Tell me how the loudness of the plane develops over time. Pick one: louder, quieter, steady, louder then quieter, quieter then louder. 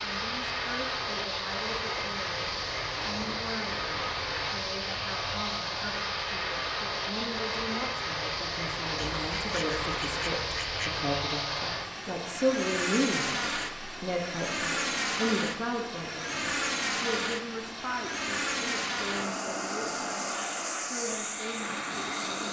steady.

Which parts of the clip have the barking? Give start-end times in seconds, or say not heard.
not heard.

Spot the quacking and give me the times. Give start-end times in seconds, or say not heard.
8.9-11.0.